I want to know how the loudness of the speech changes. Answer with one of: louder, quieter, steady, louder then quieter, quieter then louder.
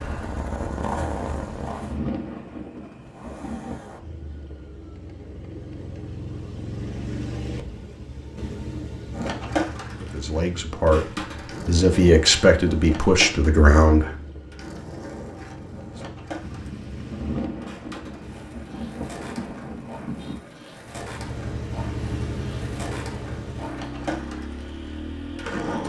quieter then louder.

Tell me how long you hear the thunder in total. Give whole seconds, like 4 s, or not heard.
7 s.